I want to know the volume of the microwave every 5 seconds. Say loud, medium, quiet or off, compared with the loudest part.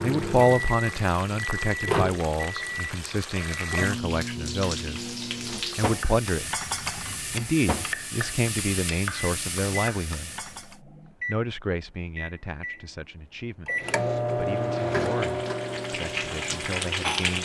loud, medium, loud, loud.